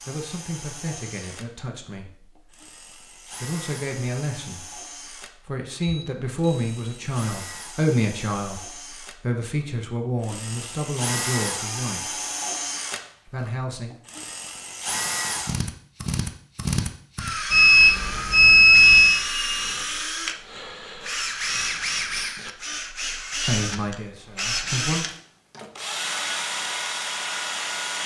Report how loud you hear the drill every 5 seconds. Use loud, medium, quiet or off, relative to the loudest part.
quiet, quiet, loud, loud, loud, loud.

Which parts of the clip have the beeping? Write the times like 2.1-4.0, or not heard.
5.8-6.9, 17.5-19.2.